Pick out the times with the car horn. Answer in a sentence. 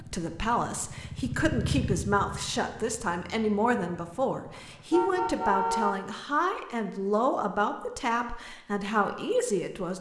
You can hear the car horn from 4.7 to 6.0 s.